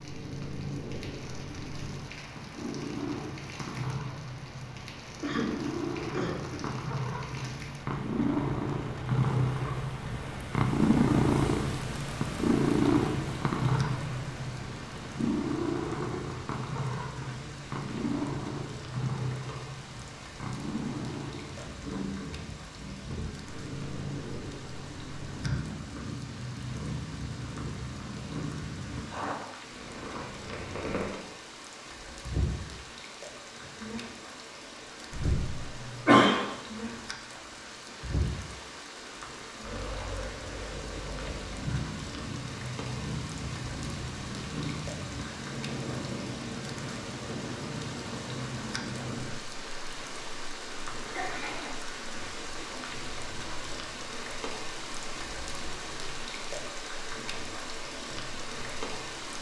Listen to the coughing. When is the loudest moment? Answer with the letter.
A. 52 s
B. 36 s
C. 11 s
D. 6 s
B.